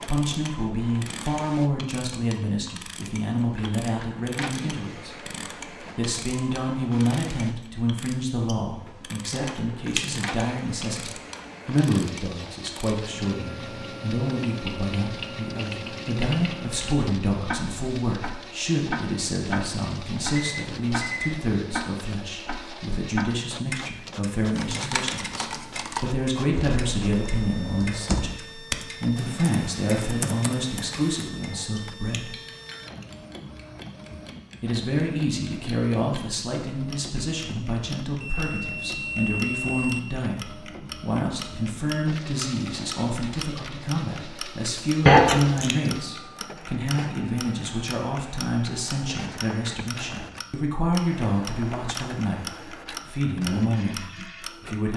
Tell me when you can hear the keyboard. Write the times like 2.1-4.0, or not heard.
24.6-31.3.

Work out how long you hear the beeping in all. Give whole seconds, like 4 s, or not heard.
3 s.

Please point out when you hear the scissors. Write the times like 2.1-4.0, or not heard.
9.3-10.1, 31.5-32.2, 45.0-45.8.